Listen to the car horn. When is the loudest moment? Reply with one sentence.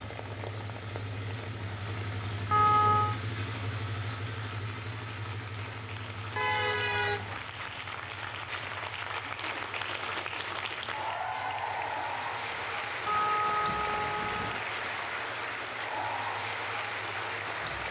The loudest moment of the car horn is at 3 seconds.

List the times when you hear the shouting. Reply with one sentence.
The shouting can't be heard in this clip.